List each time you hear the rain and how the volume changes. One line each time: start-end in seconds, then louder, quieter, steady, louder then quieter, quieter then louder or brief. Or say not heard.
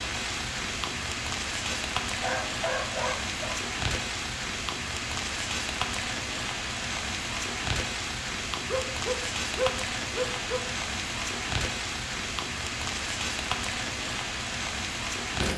0.0-15.5 steady.